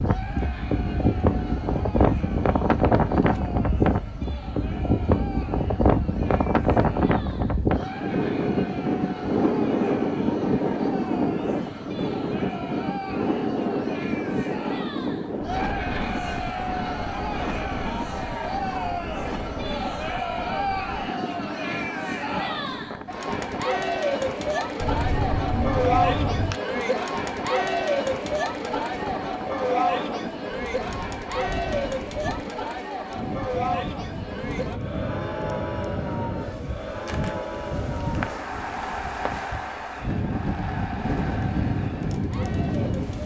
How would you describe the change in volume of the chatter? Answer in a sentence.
The loudness of the chatter goes up, then down.